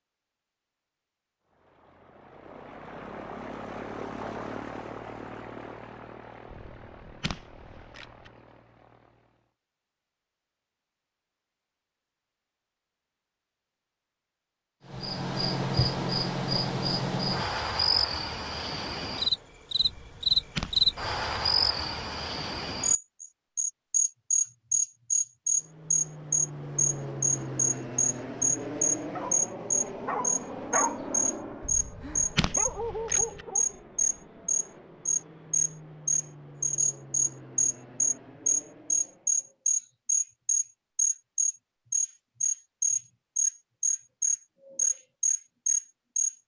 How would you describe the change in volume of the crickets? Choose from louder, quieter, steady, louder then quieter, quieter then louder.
steady.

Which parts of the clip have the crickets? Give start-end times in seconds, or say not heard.
14.8-46.4.